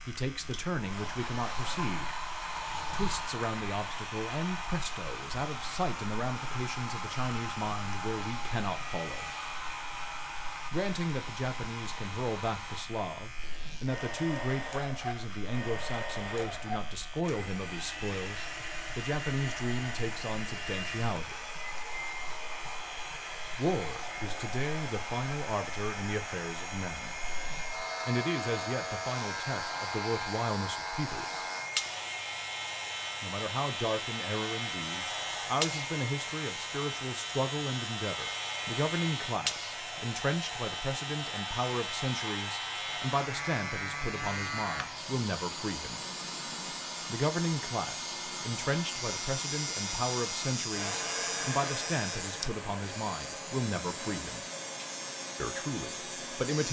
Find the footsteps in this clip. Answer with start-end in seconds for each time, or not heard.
not heard.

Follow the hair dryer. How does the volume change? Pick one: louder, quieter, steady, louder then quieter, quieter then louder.
steady.